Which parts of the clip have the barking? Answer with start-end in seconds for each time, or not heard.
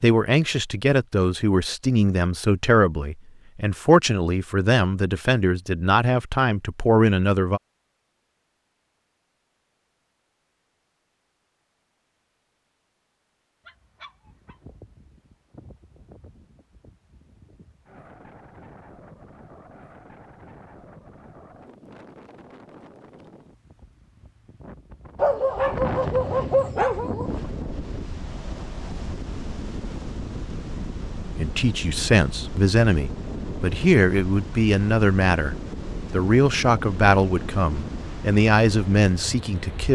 13.7-14.6, 25.1-27.4.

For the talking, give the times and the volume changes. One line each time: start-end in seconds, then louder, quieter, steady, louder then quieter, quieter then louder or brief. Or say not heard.
0.0-7.6 steady
31.4-39.9 steady.